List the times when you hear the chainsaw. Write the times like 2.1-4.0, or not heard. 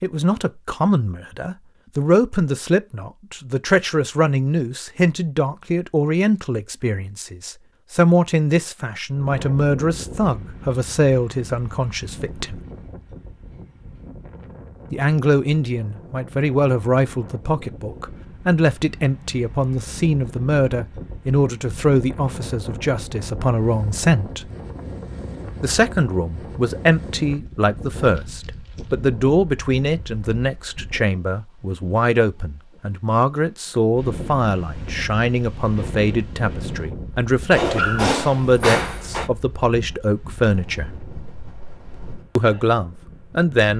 not heard.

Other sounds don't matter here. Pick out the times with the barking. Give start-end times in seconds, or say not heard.
37.5-39.3.